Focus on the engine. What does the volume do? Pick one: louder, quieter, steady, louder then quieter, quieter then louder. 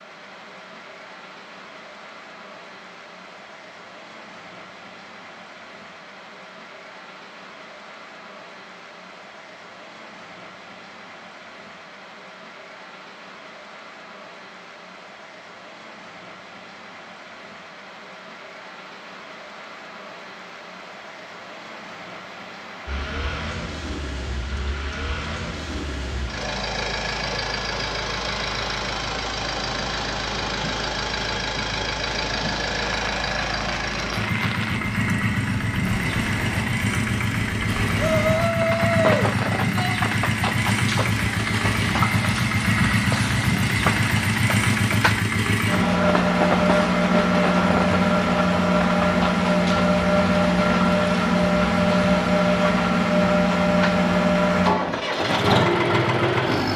louder.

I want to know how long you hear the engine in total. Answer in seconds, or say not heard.
34 s.